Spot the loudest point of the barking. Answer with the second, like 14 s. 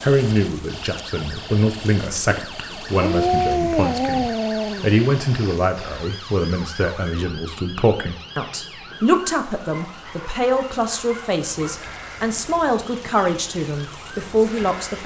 3 s.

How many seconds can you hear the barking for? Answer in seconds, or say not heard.
4 s.